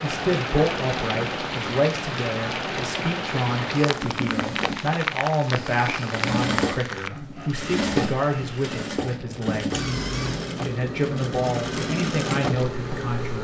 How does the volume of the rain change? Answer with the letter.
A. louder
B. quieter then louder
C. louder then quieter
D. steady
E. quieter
B.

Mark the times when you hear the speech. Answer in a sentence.
You can hear the speech from 0.0 to 9.8 s and from 10.7 to 13.4 s.